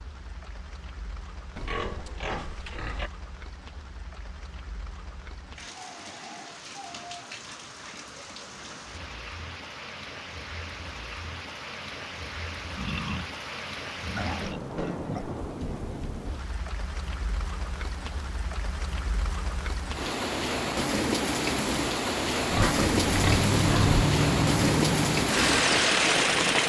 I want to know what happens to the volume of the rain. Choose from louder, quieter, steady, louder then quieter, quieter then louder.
louder.